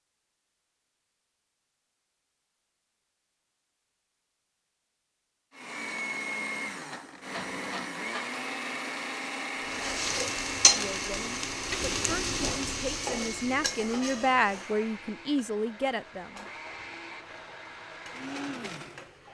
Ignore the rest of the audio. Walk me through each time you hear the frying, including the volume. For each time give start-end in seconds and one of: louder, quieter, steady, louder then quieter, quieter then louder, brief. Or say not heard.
9.7-19.3 quieter.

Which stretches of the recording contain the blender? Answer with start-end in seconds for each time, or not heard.
5.5-19.1.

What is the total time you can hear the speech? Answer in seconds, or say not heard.
6 s.